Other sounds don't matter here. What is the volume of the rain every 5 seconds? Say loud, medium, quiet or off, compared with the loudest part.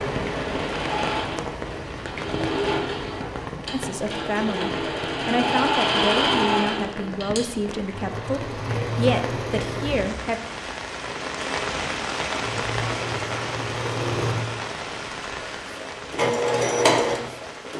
loud, medium, loud, medium.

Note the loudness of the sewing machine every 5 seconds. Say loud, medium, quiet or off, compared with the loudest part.
medium, loud, medium, loud.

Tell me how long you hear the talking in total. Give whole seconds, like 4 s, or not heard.
7 s.